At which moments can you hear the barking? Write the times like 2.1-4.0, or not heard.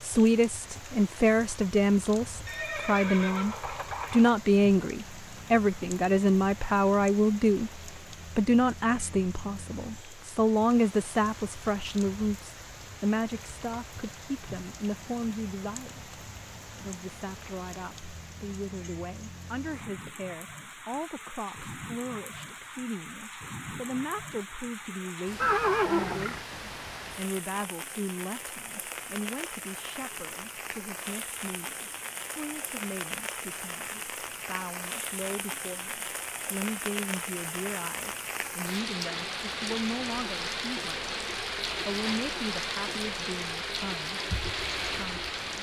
not heard.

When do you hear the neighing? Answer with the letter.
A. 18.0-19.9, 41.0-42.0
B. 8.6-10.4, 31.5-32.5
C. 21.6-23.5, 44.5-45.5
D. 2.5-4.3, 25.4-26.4
D.